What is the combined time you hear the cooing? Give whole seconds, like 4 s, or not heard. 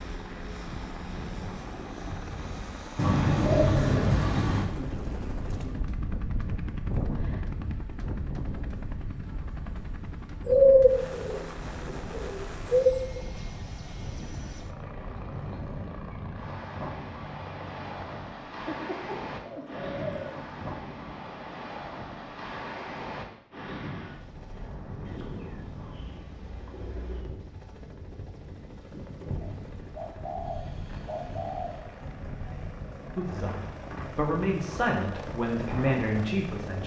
11 s.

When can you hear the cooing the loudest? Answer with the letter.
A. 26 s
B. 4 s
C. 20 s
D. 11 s
D.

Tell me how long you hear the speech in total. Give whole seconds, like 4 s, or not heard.
4 s.